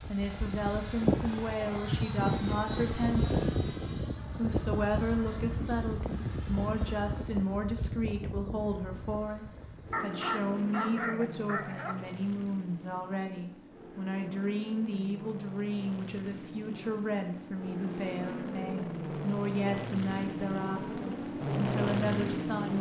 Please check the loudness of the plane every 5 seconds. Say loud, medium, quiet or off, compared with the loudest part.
loud, medium, medium, medium, loud.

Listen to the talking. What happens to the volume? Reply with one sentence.
The volume of the talking stays about the same.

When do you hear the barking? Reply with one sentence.
You can hear the barking from 9.9 to 11.9 s.